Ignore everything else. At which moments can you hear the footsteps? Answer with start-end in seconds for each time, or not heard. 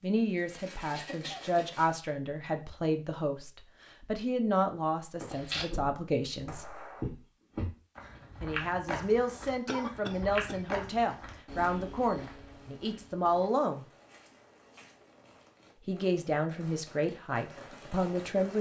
5.2-15.4.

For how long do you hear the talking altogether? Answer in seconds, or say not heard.
15 s.